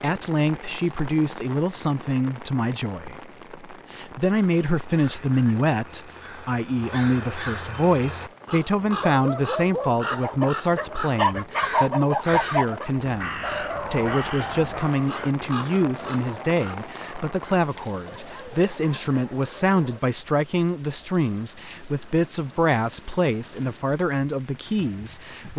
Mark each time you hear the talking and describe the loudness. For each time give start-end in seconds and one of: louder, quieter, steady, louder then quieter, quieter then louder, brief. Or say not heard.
0.0-25.5 steady.